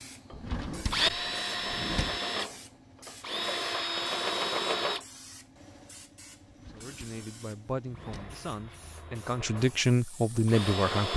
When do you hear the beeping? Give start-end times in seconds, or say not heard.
not heard.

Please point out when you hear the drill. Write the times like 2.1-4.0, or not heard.
0.3-5.0, 7.2-11.1.